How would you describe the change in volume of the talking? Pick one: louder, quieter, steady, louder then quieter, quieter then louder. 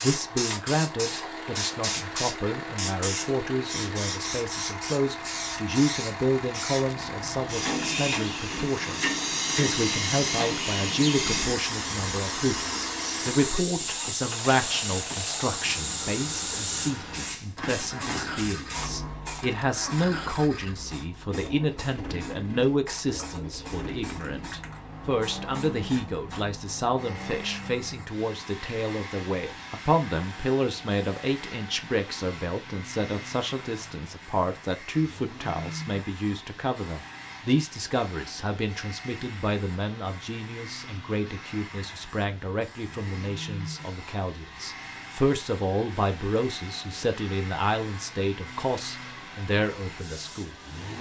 steady.